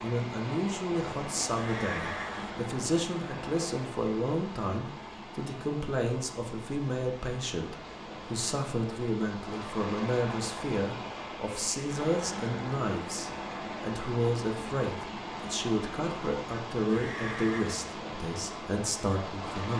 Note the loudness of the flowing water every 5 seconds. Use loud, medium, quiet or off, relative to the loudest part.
loud, medium, loud, loud.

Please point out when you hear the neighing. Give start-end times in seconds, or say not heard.
1.6-2.5, 16.9-17.9.